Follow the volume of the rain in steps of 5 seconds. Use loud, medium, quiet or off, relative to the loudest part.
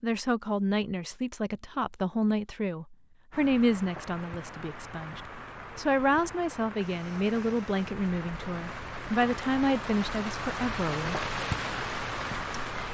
medium, medium, loud.